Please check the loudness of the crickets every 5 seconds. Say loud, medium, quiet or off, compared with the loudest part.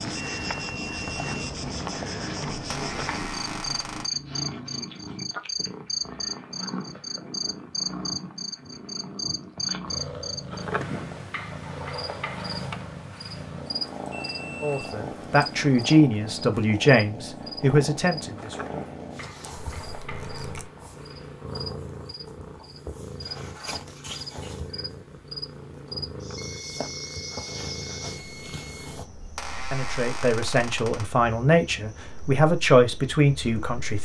loud, loud, loud, medium, medium, medium, quiet.